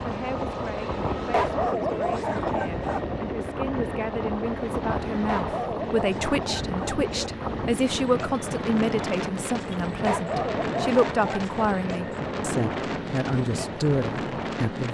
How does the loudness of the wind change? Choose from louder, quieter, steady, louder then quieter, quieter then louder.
steady.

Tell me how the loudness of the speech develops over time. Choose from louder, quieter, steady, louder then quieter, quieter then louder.
louder.